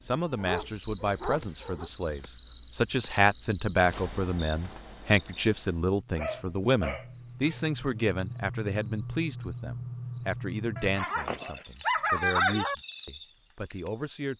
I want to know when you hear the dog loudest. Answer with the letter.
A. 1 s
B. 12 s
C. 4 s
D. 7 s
B.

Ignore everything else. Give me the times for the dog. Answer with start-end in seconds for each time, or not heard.
0.3-1.9, 6.2-7.7, 10.8-12.8.